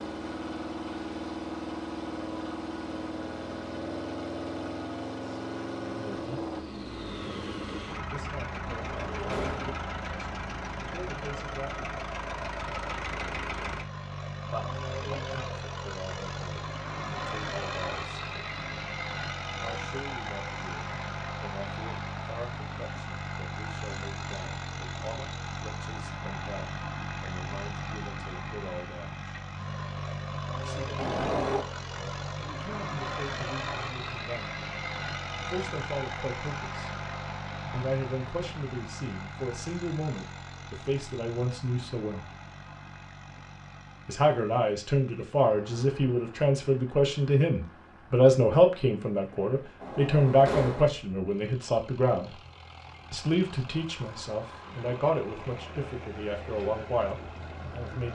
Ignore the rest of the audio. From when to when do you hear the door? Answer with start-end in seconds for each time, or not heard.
8.7-9.8, 30.9-31.6, 49.8-50.9.